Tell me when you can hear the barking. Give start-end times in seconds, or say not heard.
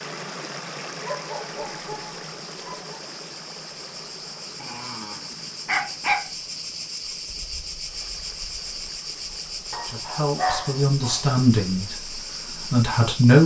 1.0-3.0, 4.6-6.3, 9.7-11.2.